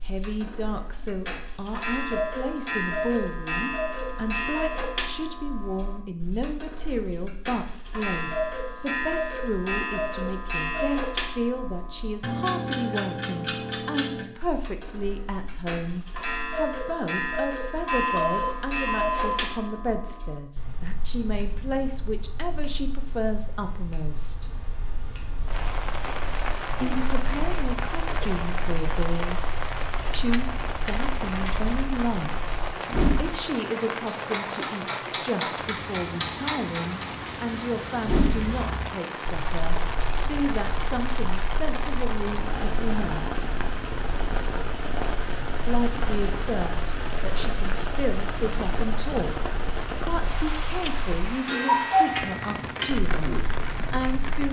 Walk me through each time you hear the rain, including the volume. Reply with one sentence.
You can hear the rain from 25.4 to 54.4 s, at a steady volume.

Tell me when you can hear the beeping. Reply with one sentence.
The beeping can be heard from 17.8 to 19.4 s.